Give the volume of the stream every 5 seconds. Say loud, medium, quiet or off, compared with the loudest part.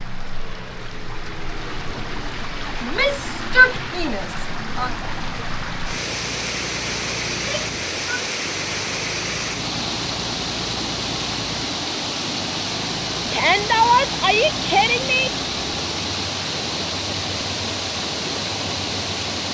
medium, loud, loud, loud.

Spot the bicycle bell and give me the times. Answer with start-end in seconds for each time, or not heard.
not heard.